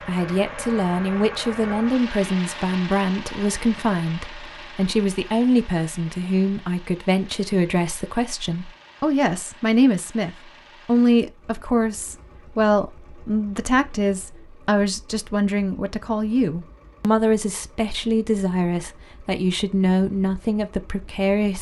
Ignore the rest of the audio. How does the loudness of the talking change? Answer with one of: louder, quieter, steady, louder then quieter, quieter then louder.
steady.